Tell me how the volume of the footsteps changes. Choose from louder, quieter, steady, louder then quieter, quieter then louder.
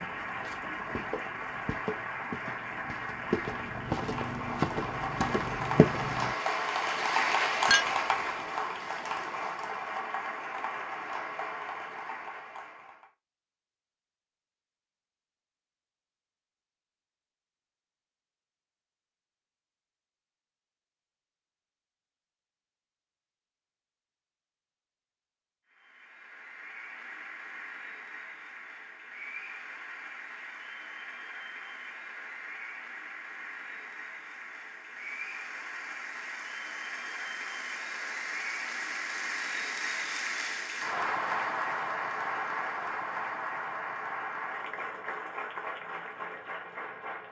louder.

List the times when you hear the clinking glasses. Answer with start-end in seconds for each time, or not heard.
7.7-8.2.